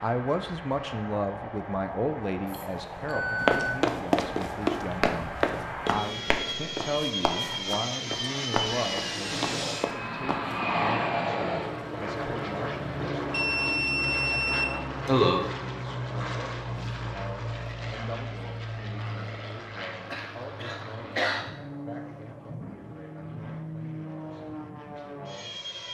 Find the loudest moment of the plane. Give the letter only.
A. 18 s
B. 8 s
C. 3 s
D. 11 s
D.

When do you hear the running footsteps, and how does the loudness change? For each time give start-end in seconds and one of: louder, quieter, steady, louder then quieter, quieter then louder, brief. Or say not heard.
3.5-10.6 quieter.